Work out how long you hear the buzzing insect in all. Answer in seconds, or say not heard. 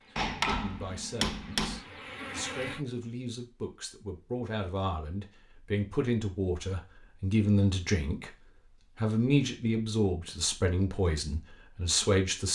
3 s.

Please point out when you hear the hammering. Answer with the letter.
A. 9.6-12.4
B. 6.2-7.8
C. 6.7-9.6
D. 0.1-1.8
D.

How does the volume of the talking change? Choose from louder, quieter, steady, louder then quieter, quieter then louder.
louder.